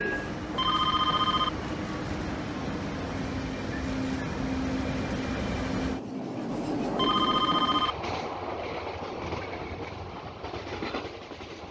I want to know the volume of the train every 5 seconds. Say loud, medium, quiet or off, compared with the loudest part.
loud, loud, medium.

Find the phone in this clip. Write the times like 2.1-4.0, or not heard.
0.1-1.5, 6.5-8.0.